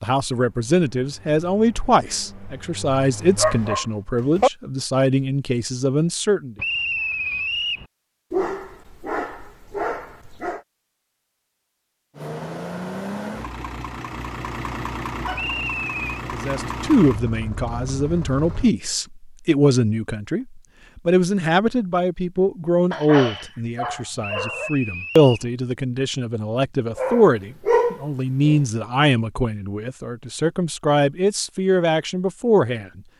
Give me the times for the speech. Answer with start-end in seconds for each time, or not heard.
0.0-6.5, 16.3-33.0.